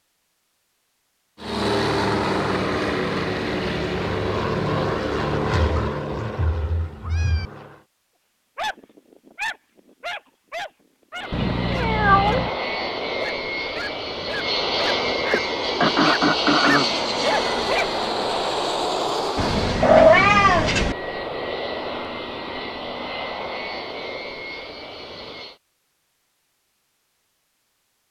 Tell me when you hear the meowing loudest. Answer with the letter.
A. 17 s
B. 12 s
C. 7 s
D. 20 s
D.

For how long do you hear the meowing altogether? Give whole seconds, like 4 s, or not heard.
5 s.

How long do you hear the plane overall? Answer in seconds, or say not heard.
21 s.